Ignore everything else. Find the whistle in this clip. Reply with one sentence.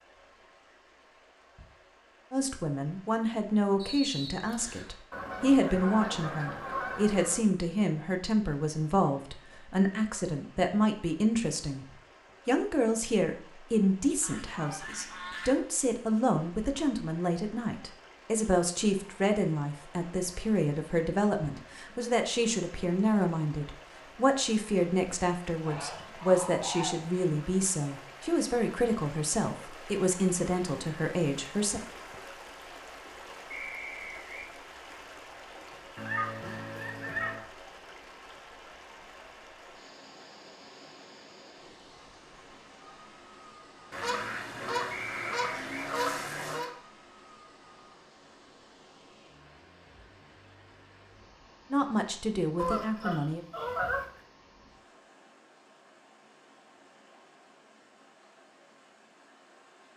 The whistle can be heard from 3.8 to 4.9 s, from 33.5 to 34.5 s and from 44.9 to 45.9 s.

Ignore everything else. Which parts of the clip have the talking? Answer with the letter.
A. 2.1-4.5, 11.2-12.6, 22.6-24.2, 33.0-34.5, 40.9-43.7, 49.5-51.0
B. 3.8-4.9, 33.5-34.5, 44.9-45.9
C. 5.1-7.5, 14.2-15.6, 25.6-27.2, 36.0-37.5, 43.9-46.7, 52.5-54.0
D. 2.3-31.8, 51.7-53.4
D.